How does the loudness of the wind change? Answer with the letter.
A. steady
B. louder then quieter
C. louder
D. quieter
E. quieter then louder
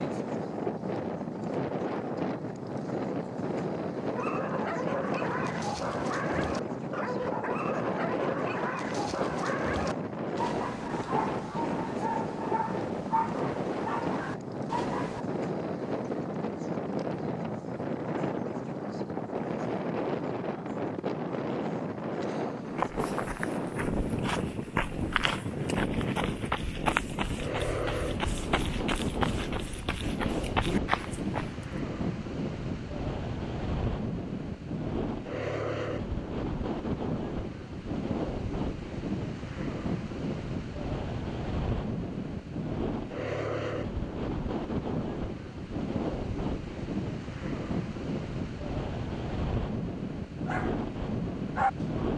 A.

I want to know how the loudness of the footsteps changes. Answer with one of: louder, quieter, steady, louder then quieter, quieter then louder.
louder.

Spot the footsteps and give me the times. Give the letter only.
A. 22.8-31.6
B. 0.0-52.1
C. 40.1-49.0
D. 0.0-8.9
A.